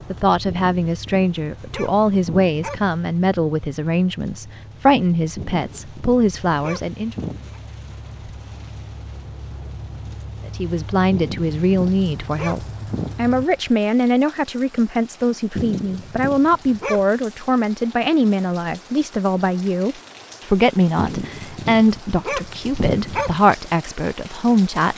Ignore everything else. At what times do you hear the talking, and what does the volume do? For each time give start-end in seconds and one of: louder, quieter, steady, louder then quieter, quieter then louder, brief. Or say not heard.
0.1-7.2 steady
10.4-24.9 steady.